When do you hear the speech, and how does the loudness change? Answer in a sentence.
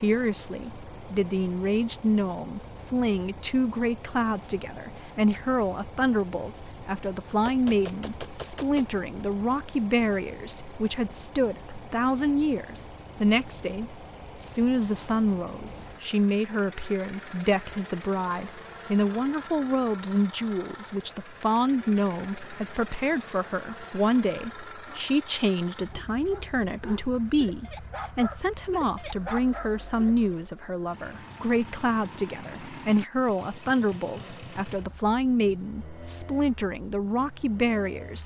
You can hear the speech from 0.0 to 38.2 s, at a steady volume.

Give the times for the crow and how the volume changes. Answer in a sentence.
The crow can't be heard in this clip.